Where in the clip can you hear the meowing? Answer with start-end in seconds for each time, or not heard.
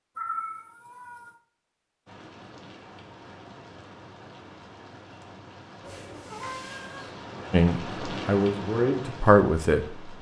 0.1-1.4, 5.8-7.2.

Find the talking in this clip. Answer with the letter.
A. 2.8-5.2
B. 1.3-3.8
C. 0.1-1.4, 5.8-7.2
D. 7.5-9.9
D.